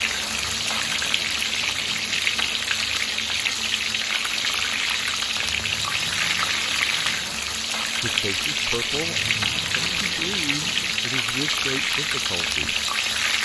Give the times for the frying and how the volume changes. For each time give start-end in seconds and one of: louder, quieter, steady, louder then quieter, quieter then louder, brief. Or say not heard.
0.0-13.3 steady.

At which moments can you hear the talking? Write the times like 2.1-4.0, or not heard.
8.0-12.8.